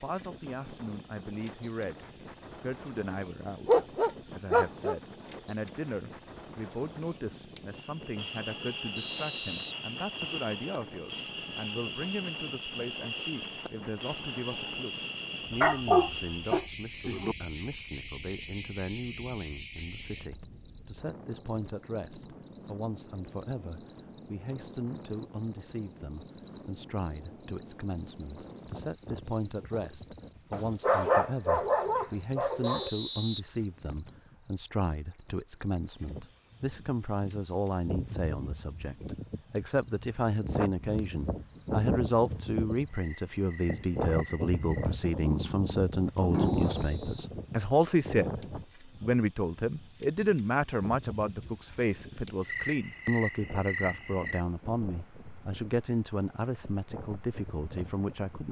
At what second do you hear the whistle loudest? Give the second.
33 s.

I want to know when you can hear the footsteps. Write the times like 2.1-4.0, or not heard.
not heard.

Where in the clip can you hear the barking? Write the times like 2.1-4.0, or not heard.
3.6-5.4, 15.6-17.4, 30.5-32.9, 45.2-46.8.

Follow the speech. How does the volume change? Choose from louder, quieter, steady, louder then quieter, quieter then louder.
louder.